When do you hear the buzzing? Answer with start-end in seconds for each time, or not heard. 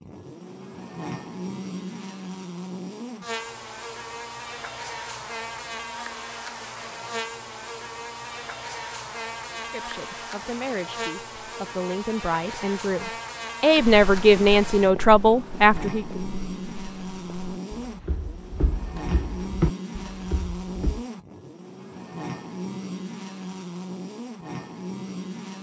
0.0-25.5.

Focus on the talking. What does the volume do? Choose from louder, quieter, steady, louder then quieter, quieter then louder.
louder.